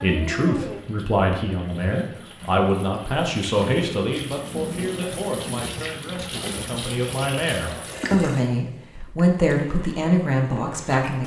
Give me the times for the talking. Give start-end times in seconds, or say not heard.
0.0-11.2.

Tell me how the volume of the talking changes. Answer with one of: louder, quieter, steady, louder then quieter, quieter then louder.
quieter then louder.